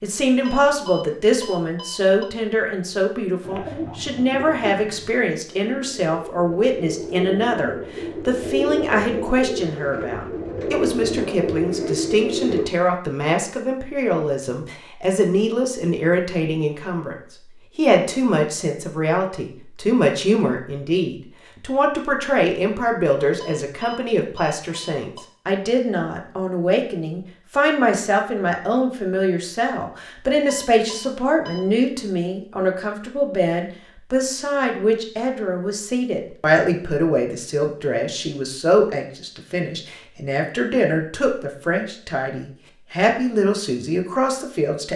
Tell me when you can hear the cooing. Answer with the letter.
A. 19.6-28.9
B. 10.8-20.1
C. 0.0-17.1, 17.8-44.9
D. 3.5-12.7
D.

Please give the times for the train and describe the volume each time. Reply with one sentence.
The train can't be heard in this clip.